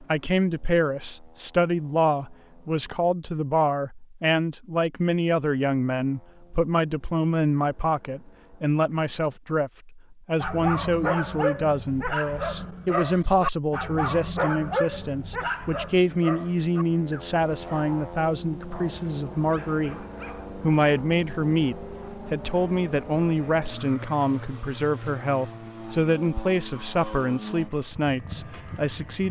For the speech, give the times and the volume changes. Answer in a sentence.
The speech can be heard from 0.0 to 29.2 s, at a steady volume.